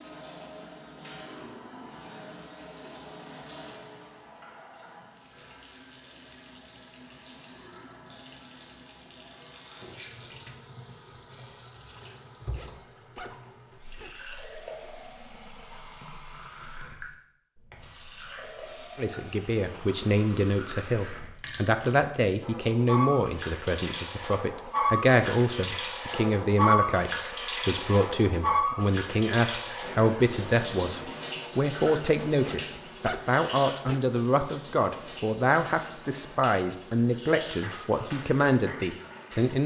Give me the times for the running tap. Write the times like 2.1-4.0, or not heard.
0.0-39.6.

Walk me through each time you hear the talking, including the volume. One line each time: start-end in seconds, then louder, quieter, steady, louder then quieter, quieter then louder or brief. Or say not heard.
18.9-39.6 steady.